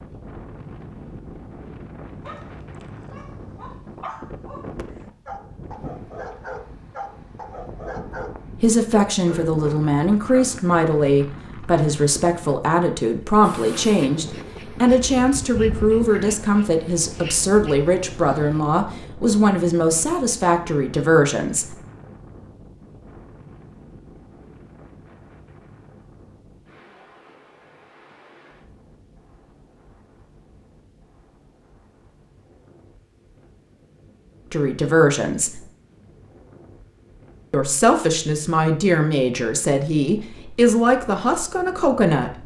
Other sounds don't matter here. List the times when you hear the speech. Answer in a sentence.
The speech can be heard from 8.6 to 21.8 s, from 34.5 to 35.6 s and from 37.5 to 42.4 s.